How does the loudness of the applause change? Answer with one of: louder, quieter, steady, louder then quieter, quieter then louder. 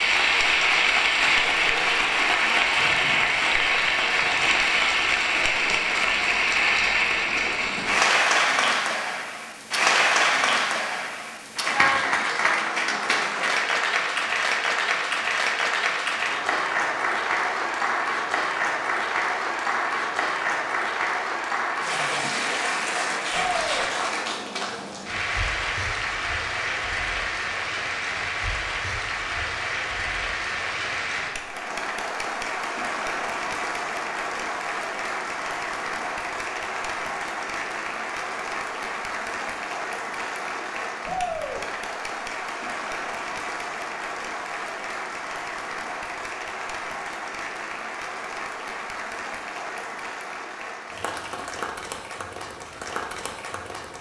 quieter.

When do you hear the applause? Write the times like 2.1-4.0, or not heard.
0.0-53.9.